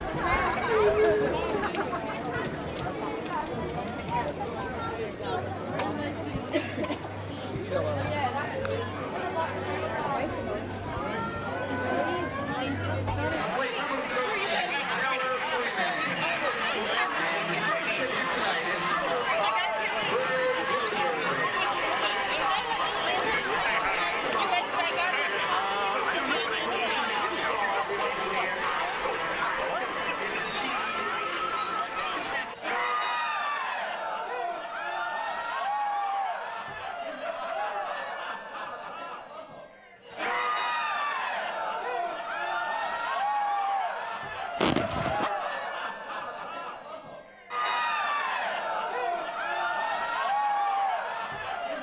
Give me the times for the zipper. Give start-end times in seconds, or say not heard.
44.5-45.3.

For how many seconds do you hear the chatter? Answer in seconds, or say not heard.
52 s.